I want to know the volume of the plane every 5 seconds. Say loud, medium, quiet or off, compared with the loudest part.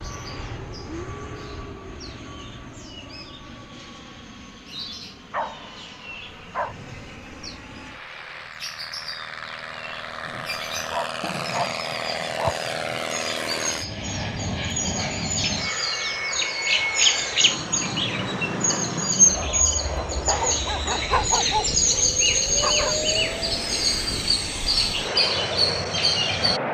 medium, medium, loud, loud, loud, loud.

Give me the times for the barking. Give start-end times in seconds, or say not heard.
5.3-6.8, 10.2-13.0, 20.2-22.9.